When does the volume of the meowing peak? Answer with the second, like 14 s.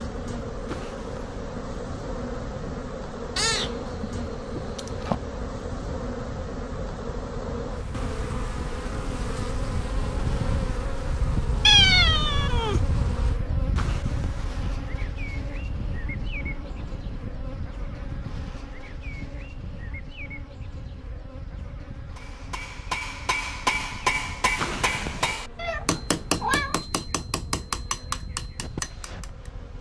12 s.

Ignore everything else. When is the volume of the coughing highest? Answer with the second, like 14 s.
25 s.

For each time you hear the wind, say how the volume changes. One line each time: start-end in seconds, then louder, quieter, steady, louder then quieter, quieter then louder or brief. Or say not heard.
0.0-29.7 louder then quieter.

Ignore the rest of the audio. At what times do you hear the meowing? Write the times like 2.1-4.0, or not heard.
3.4-5.2, 11.7-12.8, 25.6-26.9.